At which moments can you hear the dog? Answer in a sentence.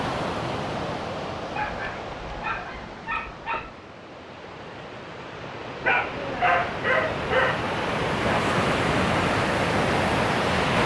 The dog can be heard from 1.5 to 3.8 s and from 5.8 to 7.7 s.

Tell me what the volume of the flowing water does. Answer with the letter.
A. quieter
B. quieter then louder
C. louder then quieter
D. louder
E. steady
B.